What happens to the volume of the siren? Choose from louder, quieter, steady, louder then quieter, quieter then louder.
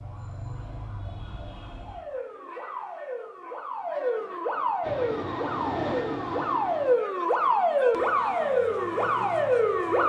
louder.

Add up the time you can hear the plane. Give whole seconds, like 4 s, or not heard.
2 s.